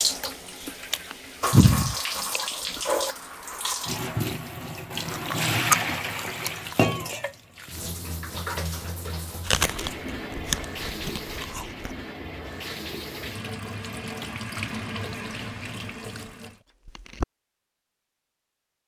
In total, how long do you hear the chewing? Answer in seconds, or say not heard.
8 s.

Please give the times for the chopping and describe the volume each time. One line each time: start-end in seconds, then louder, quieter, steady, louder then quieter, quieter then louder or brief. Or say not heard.
not heard.